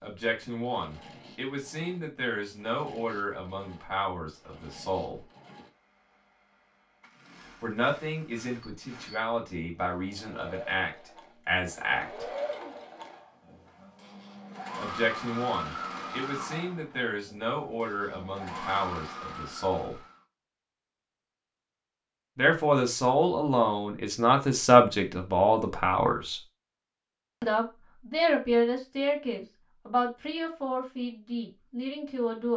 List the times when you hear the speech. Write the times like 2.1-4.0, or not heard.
0.0-5.2, 7.6-12.2, 14.8-19.9, 22.4-26.4, 27.4-32.5.